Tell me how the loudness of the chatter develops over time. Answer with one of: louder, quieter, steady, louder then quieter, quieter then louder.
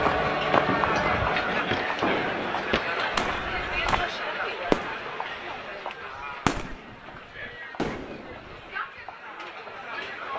quieter.